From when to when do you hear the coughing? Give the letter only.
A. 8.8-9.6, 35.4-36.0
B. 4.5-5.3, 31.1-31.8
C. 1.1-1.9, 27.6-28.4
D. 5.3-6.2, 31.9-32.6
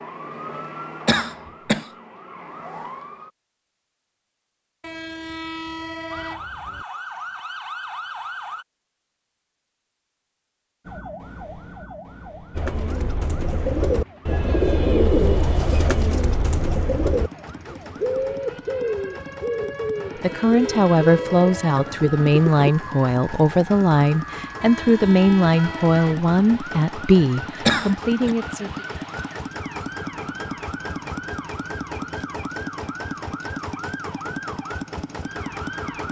C.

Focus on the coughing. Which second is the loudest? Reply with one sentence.
The volume of the coughing peaks at 28 seconds.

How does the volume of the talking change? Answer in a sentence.
The loudness of the talking stays about the same.